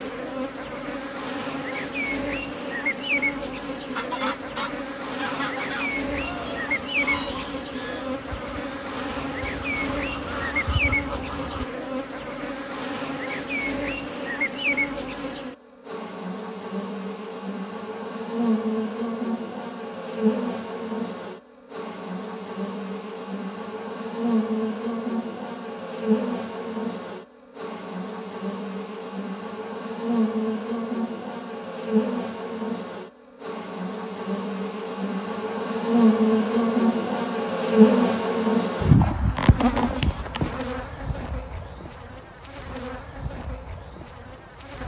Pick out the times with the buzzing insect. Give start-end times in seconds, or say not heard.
0.0-44.8.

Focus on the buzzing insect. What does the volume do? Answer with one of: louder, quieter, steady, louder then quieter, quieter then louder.
louder.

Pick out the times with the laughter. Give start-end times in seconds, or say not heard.
not heard.